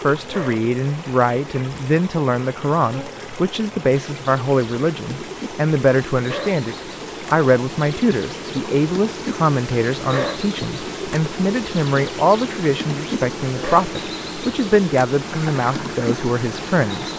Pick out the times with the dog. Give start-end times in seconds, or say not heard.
0.2-0.7, 6.2-6.6, 10.0-10.4, 13.5-13.9.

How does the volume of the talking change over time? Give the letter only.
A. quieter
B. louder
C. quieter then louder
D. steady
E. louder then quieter
D.